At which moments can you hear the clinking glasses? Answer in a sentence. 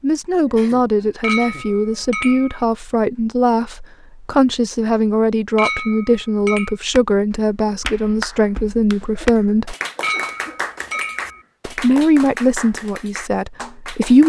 You can hear the clinking glasses from 1.2 to 2.6 s, from 5.5 to 6.8 s and from 10.0 to 11.4 s.